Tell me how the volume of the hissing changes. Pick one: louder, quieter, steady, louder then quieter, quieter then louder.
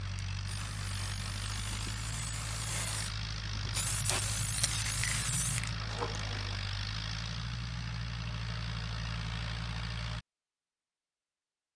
louder.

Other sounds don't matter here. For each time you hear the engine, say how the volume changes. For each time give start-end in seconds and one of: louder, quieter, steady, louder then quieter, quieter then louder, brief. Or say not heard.
0.0-10.2 steady.